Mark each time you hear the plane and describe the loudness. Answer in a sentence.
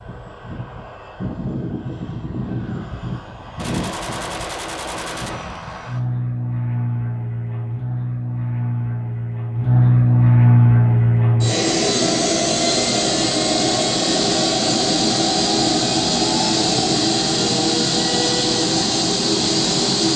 The plane can be heard from 0.0 to 20.1 s, getting louder.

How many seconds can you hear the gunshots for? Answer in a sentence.
You can hear the gunshots for 2 seconds altogether.